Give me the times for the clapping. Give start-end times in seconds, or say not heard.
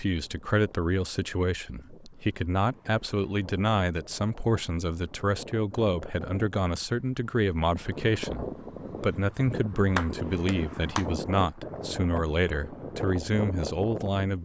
9.9-11.1.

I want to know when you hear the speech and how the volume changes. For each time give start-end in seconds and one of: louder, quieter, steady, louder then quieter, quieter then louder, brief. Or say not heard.
0.0-14.4 steady.